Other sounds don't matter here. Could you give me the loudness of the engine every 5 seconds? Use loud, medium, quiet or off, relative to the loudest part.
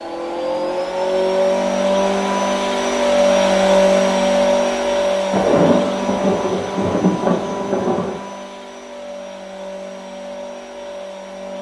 loud, medium, quiet.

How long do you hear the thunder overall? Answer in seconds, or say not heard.
3 s.